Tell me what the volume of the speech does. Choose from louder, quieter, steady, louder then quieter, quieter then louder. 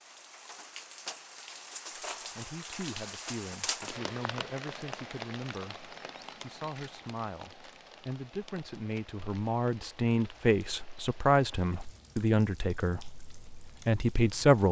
louder.